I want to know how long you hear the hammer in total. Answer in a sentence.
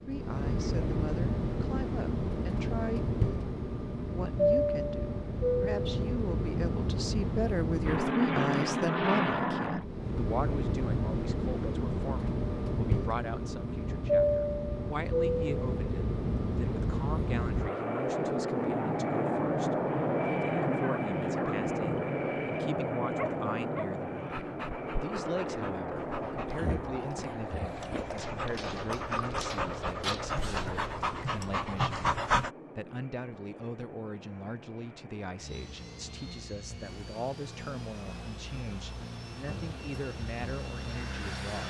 The hammer can't be heard in this clip.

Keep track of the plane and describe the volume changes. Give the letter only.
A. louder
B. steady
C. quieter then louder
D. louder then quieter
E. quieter
E.